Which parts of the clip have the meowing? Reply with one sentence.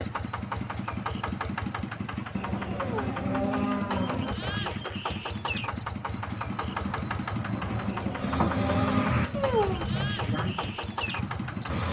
The meowing can be heard from 2.7 to 3.2 s and from 9.3 to 9.8 s.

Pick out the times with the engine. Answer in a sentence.
You can hear the engine from 0.0 to 11.8 s.